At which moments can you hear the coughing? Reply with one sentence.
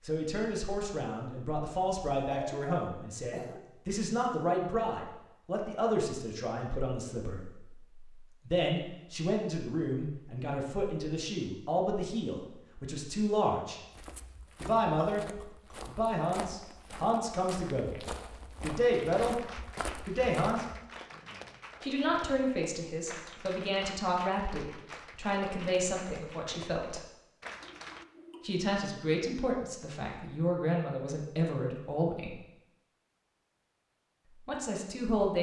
The coughing can be heard from 2.2 to 3.6 s, from 14.7 to 15.8 s and from 27.6 to 28.6 s.